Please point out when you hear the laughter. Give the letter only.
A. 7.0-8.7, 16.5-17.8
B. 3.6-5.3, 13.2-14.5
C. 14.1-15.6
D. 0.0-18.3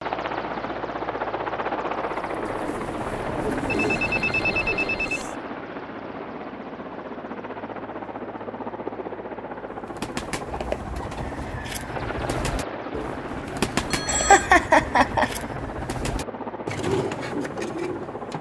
C.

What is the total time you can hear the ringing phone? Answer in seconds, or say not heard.
3 s.